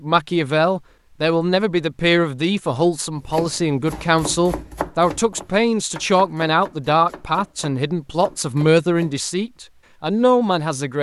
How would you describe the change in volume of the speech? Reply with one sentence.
The volume of the speech stays about the same.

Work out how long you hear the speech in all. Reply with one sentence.
The speech can be heard for 11 seconds in total.